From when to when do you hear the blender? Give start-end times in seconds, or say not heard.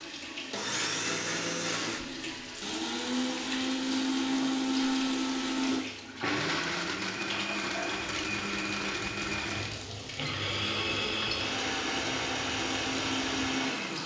0.1-14.0.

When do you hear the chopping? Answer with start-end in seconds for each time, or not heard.
not heard.